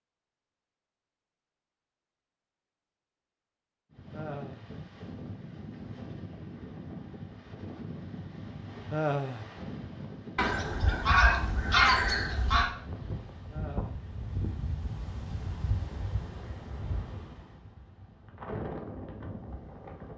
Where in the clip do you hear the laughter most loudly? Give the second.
9 s.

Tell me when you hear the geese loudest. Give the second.
12 s.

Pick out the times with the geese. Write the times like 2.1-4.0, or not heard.
10.3-12.7.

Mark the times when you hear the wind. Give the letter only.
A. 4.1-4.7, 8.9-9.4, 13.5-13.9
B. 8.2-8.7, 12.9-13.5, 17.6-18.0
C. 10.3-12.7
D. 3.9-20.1
D.